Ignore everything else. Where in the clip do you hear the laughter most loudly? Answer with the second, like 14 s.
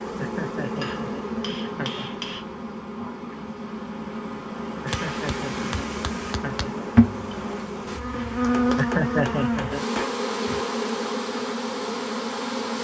9 s.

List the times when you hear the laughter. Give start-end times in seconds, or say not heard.
0.1-2.2, 4.8-6.8, 8.8-9.8.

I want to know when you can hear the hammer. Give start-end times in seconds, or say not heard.
0.8-2.5, 4.9-6.7, 8.5-10.2.